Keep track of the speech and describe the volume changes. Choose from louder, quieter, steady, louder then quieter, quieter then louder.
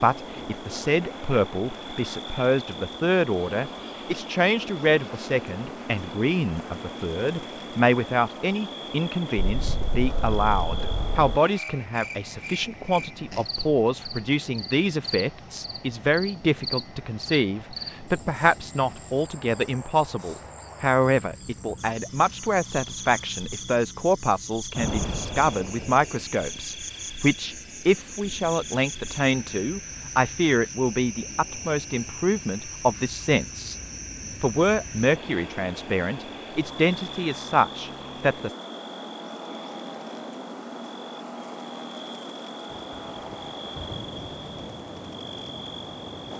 steady.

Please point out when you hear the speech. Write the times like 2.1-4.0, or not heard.
0.0-33.8, 34.4-38.5.